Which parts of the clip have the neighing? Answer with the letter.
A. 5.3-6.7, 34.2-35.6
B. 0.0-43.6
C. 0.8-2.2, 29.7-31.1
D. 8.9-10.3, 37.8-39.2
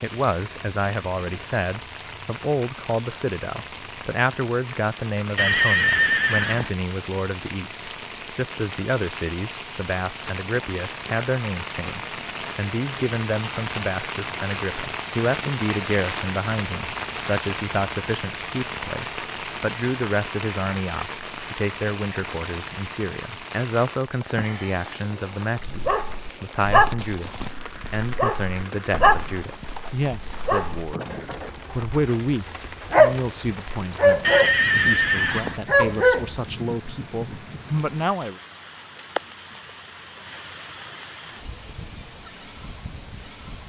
A.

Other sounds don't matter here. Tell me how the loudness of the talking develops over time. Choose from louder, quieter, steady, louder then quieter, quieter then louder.
steady.